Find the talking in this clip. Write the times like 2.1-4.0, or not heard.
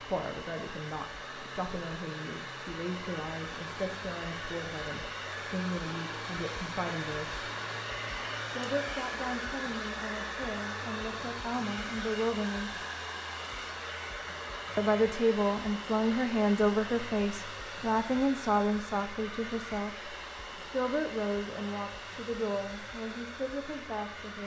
0.0-7.5, 8.5-12.8, 14.8-24.4.